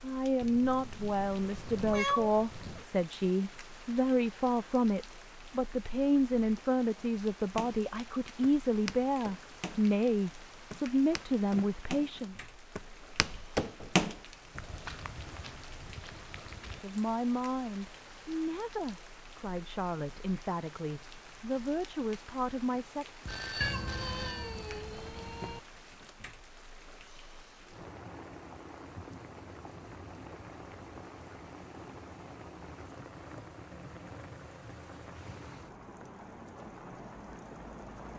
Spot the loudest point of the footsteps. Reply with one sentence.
The volume of the footsteps peaks at 14 seconds.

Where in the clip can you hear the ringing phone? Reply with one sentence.
The ringing phone can be heard from 23.2 to 24.6 s.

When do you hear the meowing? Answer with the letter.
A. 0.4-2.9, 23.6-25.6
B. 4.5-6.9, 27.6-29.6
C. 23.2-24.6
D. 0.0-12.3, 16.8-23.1
A.